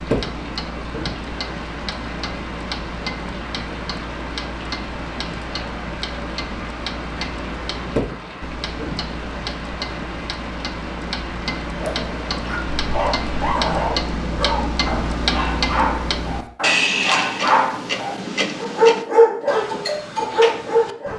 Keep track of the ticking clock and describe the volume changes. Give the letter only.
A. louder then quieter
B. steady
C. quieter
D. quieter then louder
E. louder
E.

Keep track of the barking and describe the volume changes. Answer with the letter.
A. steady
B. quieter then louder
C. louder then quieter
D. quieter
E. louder
E.